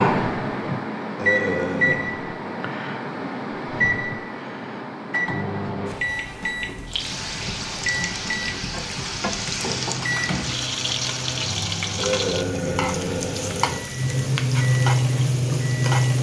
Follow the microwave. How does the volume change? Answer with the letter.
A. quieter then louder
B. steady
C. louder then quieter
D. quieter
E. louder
D.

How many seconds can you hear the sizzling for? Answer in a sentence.
You can hear the sizzling for 9 seconds altogether.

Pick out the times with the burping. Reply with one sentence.
The burping can be heard from 1.1 to 2.0 s and from 11.9 to 13.8 s.